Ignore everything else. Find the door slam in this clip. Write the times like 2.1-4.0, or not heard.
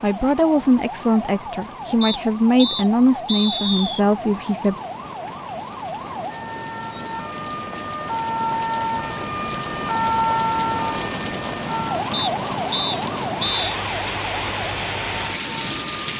not heard.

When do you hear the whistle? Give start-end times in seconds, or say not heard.
2.0-4.0, 12.1-13.7.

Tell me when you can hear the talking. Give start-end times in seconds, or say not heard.
0.0-4.8.